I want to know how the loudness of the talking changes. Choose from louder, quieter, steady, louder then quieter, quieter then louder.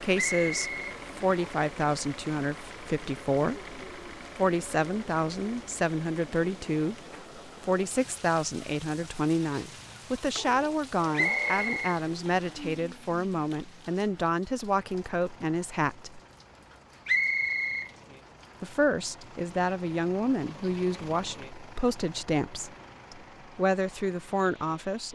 steady.